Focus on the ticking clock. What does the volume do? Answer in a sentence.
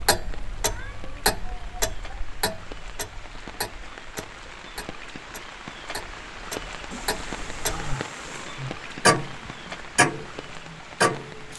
The volume of the ticking clock goes down, then up.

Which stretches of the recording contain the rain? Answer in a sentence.
You can hear the rain from 0.0 to 11.5 s.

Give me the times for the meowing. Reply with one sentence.
You can hear the meowing from 0.6 to 1.1 s and from 6.9 to 8.6 s.